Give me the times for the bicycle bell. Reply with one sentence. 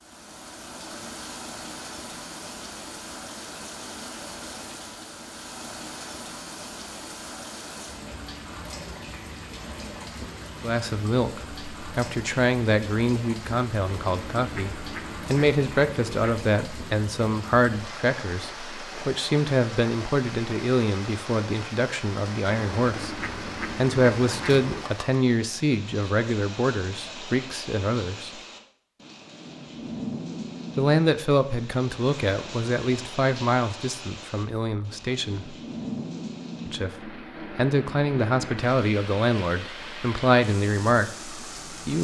The bicycle bell can't be heard in this clip.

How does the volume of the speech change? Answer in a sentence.
The loudness of the speech stays about the same.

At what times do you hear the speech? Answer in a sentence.
The speech can be heard from 10.6 to 28.4 s, from 30.8 to 35.5 s and from 36.6 to 41.9 s.